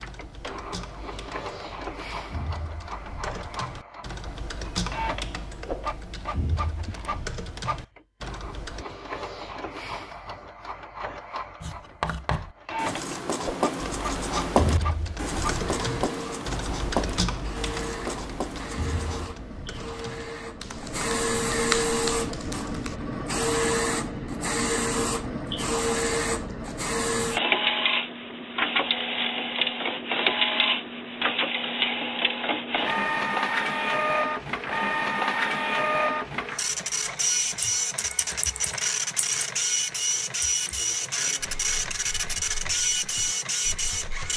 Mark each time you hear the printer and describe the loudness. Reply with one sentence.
The printer can be heard from 0.0 to 44.3 s, getting louder.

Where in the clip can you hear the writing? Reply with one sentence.
The writing can be heard from 11.6 to 19.3 s.